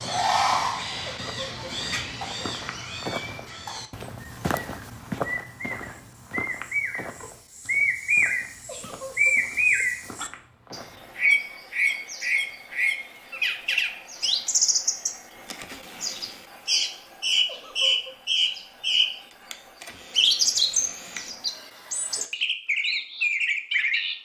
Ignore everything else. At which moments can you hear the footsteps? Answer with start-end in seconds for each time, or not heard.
0.5-11.2.